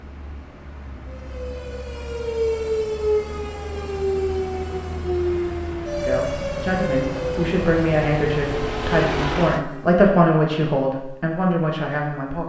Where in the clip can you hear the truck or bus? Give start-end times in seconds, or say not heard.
0.0-9.7.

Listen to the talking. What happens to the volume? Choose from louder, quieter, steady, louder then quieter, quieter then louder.
louder then quieter.